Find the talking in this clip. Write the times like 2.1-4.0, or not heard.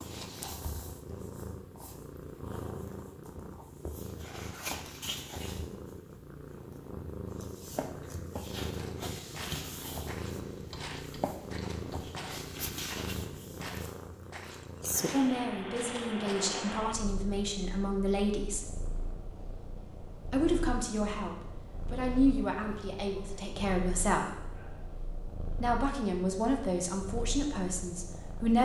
15.1-18.7, 20.3-24.2, 25.6-28.6.